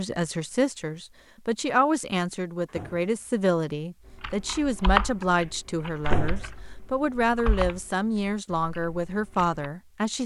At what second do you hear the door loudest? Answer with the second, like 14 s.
6 s.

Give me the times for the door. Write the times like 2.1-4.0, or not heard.
2.6-3.1, 6.0-6.5.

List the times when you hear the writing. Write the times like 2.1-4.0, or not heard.
not heard.